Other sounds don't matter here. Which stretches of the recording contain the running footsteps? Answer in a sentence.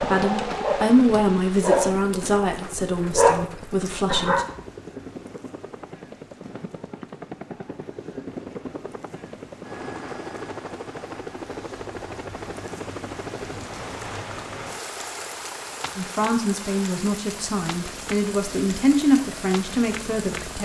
The running footsteps can't be heard in this clip.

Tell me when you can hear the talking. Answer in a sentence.
You can hear the talking from 0.0 to 4.5 s and from 15.9 to 20.6 s.